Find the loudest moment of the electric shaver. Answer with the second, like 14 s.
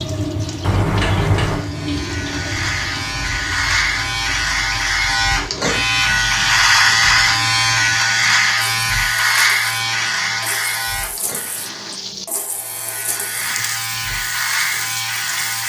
7 s.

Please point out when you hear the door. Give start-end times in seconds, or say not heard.
0.6-1.7.